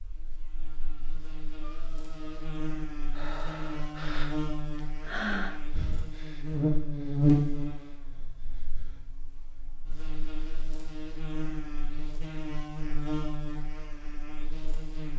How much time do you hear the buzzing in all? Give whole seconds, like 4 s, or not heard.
15 s.